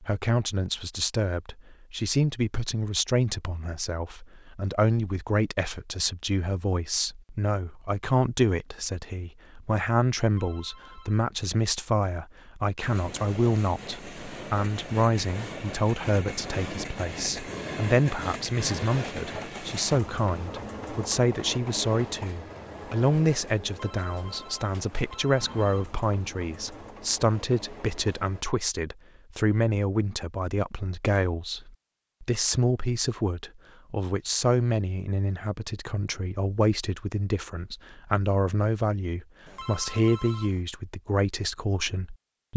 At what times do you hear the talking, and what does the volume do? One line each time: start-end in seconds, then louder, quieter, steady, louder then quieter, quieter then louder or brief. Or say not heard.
0.0-42.5 steady.